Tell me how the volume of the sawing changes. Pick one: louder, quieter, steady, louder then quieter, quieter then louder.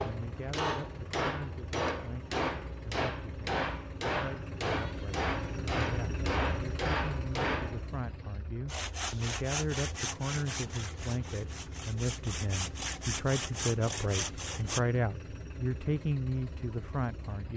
quieter then louder.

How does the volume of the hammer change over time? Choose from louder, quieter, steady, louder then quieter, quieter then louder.
steady.